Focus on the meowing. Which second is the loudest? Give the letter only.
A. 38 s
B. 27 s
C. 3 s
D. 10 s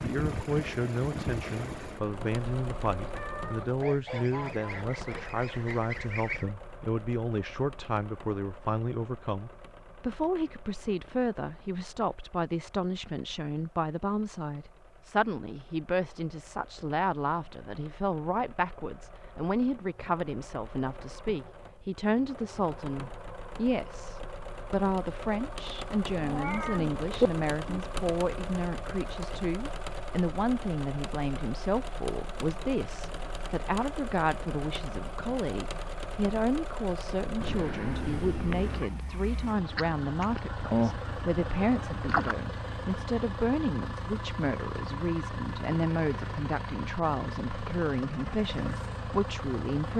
B.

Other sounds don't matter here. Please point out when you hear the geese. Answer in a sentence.
The geese can be heard from 3.8 to 6.5 s and from 39.8 to 42.4 s.